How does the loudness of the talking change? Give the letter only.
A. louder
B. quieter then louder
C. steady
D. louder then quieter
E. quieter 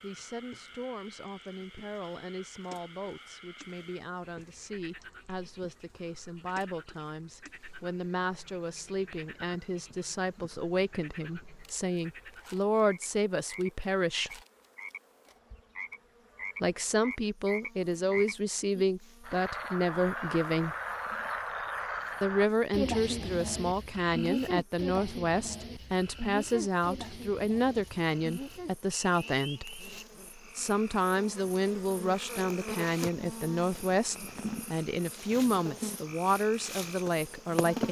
A.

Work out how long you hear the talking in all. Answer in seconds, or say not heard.
34 s.